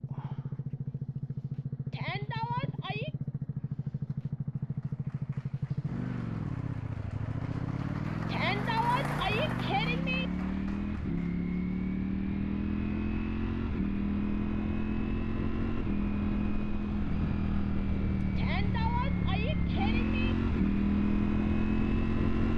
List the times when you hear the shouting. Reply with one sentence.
The shouting can be heard from 1.9 to 3.1 s, from 8.2 to 10.3 s and from 18.4 to 20.4 s.